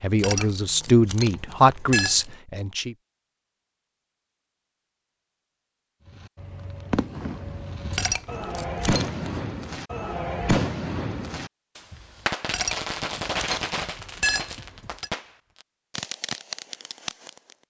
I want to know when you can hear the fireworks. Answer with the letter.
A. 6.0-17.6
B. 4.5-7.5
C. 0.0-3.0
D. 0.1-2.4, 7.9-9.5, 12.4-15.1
A.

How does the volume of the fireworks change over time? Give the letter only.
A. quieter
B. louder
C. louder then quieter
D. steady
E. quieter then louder
C.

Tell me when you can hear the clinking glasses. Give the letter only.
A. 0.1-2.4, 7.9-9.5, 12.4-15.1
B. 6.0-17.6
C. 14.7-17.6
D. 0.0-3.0
A.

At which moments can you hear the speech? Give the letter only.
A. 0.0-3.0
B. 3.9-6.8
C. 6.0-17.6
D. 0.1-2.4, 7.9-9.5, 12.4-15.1
A.